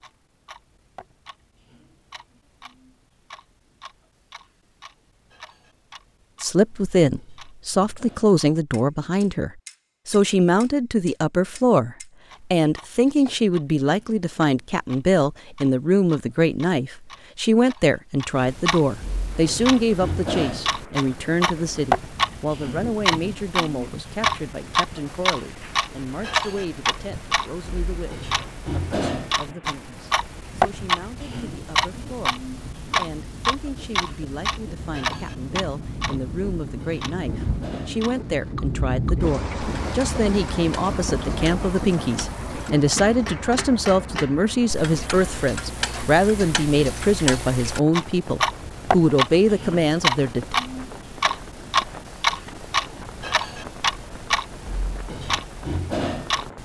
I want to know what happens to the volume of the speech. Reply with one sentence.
The loudness of the speech goes down, then up.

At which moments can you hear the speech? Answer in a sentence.
The speech can be heard from 6.4 to 50.5 s.